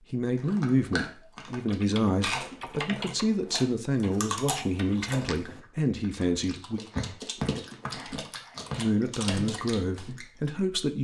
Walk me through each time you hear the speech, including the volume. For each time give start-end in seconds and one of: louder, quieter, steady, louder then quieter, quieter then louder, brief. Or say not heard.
0.1-6.8 steady
8.8-11.0 brief.